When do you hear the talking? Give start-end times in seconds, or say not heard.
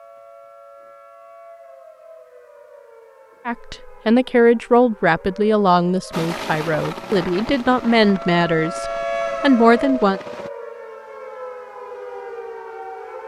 3.5-10.2.